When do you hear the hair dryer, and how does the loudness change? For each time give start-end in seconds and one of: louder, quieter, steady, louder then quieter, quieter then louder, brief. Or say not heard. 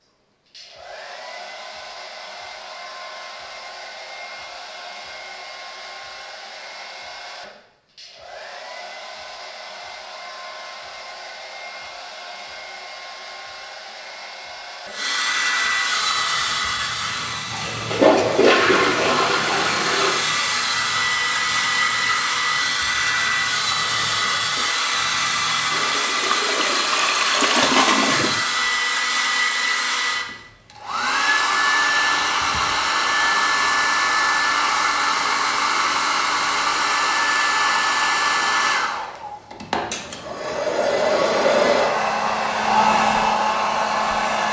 0.0-44.4 louder.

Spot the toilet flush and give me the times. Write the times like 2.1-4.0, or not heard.
17.9-20.3, 25.7-28.4.